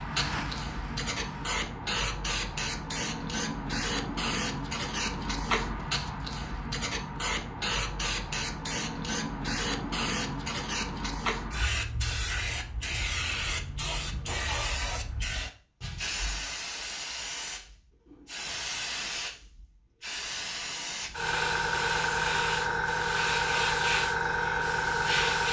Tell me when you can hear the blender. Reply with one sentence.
The blender can be heard from 0.0 to 1.6 s.